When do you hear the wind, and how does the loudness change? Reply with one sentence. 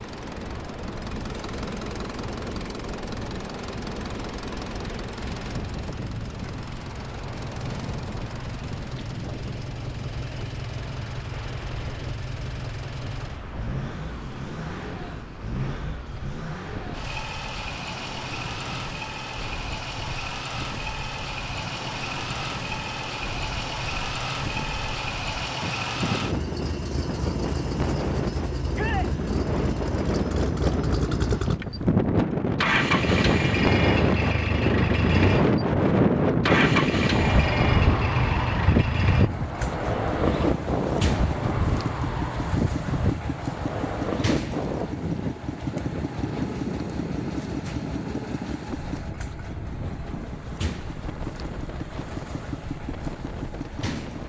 You can hear the wind from 0.0 to 54.2 s, getting louder then quieter.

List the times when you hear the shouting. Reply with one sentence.
The shouting can be heard from 28.7 to 29.1 s.